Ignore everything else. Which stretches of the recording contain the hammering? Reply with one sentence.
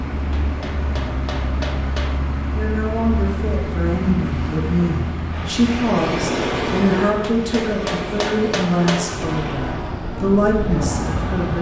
The hammering can be heard from 0.3 to 2.2 s and from 7.2 to 9.2 s.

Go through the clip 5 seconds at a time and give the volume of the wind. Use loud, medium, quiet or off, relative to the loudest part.
off, loud, loud.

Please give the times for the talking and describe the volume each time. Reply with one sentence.
The talking can be heard from 2.5 to 11.5 s, at a steady volume.